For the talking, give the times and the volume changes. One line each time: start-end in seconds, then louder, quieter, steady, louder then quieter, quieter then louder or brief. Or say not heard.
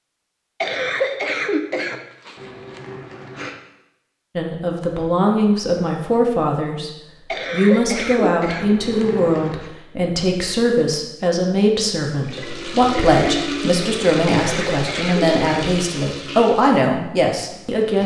4.3-6.9 brief
7.5-18.0 steady.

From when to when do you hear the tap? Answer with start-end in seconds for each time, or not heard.
12.2-18.0.